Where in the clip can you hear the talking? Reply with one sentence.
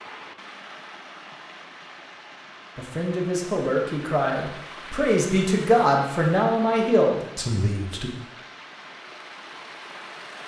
The talking can be heard from 2.8 to 8.1 s.